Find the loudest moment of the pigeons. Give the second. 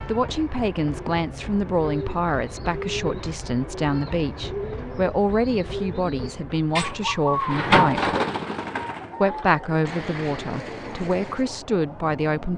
8 s.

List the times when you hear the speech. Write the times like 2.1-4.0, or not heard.
0.0-8.2, 9.2-12.5.